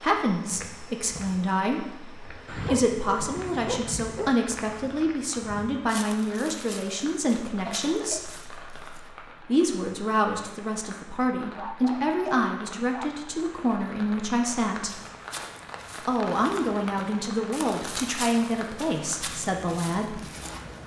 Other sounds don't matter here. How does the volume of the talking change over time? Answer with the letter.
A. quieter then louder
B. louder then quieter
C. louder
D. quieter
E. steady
E.